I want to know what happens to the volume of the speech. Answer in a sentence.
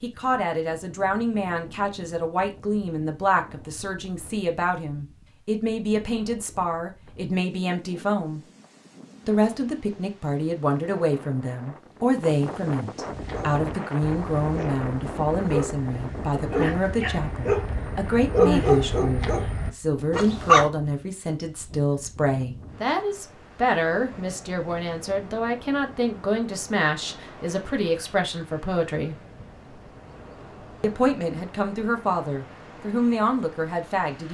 The volume of the speech stays about the same.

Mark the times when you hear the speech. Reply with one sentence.
The speech can be heard from 0.0 to 8.4 s, from 9.2 to 29.1 s and from 30.8 to 34.2 s.